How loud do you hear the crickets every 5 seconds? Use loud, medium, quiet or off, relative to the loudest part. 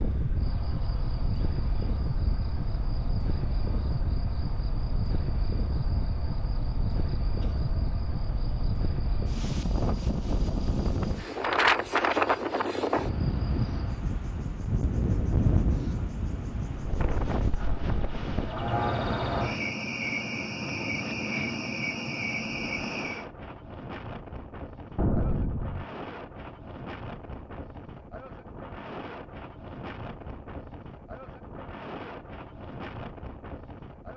quiet, quiet, quiet, loud, loud, off, off.